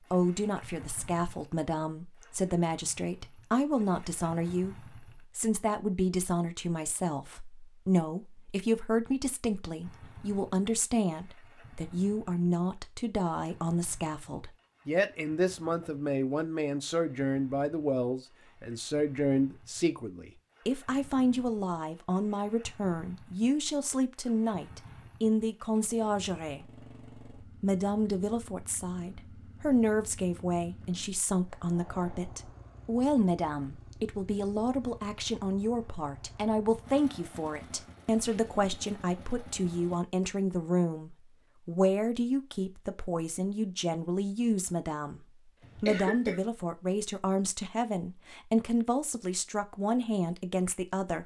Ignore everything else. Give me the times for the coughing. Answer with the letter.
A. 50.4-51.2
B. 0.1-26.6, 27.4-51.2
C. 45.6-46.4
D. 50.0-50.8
C.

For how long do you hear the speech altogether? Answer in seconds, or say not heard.
50 s.